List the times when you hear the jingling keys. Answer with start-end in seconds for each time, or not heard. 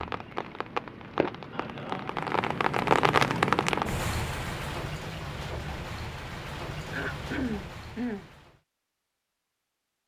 not heard.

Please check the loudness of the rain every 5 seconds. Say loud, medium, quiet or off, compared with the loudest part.
loud, medium.